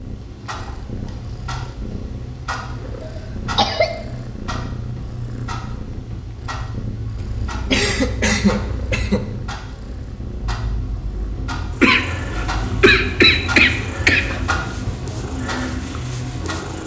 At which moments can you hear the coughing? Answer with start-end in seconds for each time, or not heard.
3.0-3.9, 7.2-9.2, 11.8-14.4.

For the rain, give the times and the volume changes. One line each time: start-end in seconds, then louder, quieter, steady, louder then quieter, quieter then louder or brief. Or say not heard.
not heard.